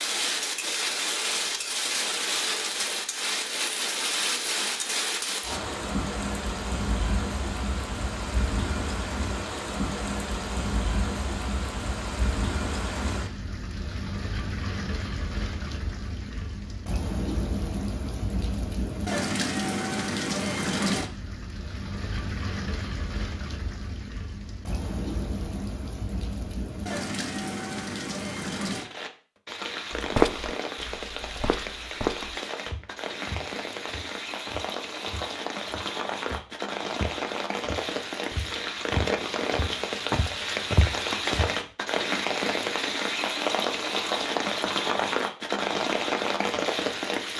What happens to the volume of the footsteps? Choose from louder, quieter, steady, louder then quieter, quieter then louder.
quieter then louder.